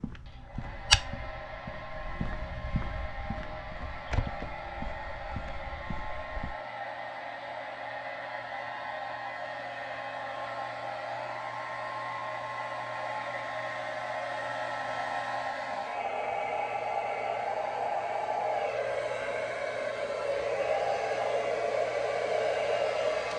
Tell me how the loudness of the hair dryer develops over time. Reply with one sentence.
The volume of the hair dryer goes up.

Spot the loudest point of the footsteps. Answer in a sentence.
The volume of the footsteps peaks at 1 second.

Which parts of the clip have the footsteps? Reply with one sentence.
You can hear the footsteps from 0.0 to 6.5 s.